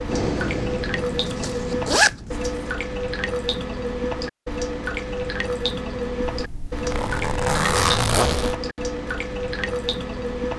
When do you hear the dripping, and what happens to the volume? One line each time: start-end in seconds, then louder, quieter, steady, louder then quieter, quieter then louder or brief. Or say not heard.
0.0-10.5 steady.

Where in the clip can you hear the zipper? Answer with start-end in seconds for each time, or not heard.
1.1-2.5, 6.2-8.6.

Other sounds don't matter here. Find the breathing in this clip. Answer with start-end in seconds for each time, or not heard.
0.0-2.5.